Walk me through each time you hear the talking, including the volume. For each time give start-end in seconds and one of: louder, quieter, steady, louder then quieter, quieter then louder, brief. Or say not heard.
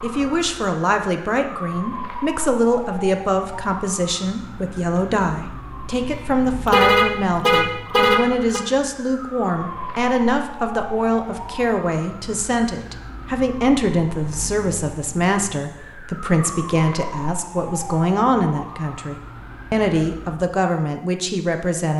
0.0-21.9 steady.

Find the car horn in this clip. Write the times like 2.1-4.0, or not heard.
6.0-8.6.